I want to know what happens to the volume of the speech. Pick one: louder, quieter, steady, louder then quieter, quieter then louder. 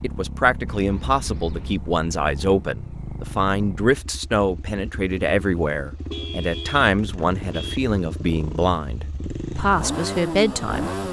steady.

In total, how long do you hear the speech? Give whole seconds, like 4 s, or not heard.
11 s.